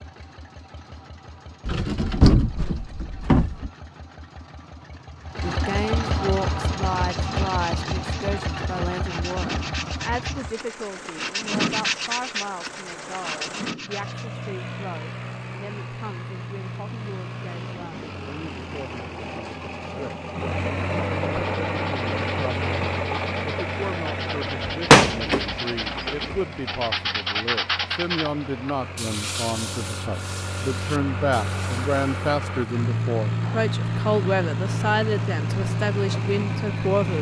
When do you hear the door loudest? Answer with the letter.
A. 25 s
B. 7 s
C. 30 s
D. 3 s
A.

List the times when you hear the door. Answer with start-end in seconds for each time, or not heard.
1.6-3.7, 24.9-26.4.